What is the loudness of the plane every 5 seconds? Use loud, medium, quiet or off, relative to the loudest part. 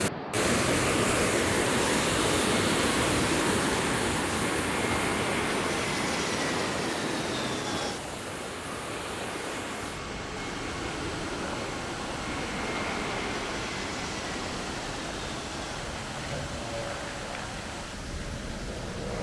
loud, loud, loud, medium.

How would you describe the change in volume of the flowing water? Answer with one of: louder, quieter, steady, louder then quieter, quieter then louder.
quieter.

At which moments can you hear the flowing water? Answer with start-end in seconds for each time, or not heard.
0.0-19.1.